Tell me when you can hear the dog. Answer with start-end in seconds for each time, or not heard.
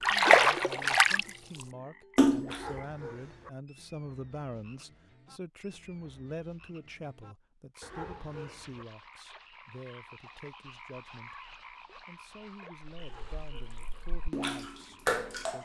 2.5-3.5, 7.8-8.8, 12.9-14.0.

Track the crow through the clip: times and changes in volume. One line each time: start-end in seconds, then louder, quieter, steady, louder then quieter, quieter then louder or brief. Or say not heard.
not heard.